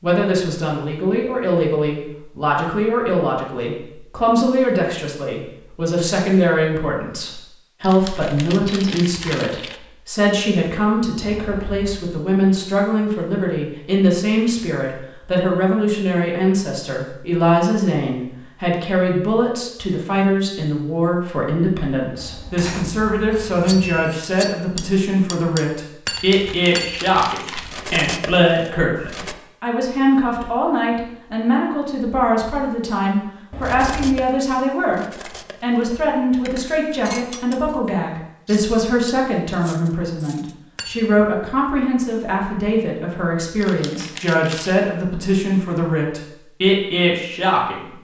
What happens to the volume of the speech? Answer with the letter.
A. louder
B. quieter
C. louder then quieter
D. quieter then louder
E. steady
E.